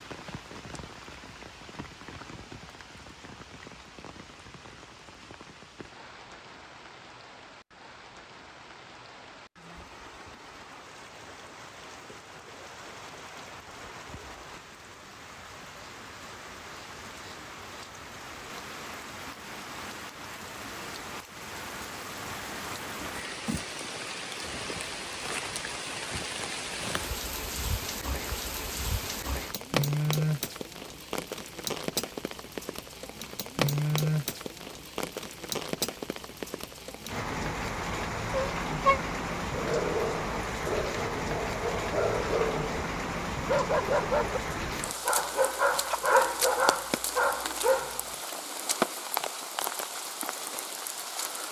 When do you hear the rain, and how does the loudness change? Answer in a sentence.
The rain can be heard from 0.0 to 51.4 s, getting louder.